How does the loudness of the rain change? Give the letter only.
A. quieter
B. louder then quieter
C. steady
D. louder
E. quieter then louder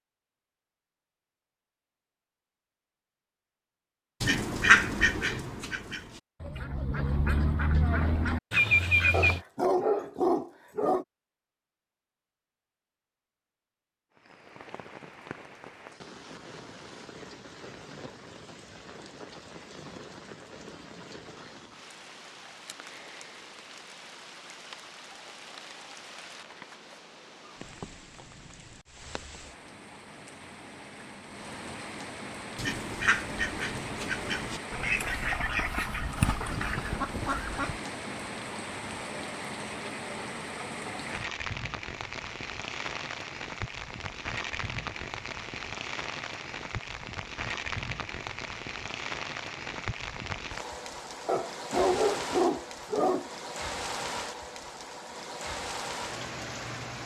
D.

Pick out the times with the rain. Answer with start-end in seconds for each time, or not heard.
14.2-57.0.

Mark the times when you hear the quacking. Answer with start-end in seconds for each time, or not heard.
4.2-9.4, 32.5-37.8.